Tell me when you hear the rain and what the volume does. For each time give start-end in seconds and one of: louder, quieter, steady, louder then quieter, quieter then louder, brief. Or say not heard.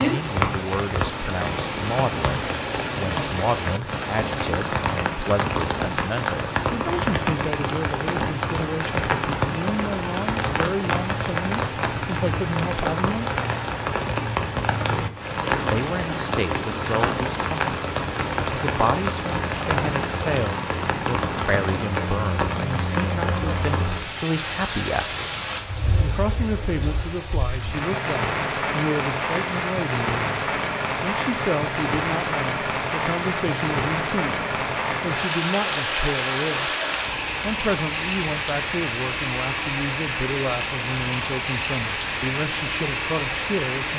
0.0-43.9 steady.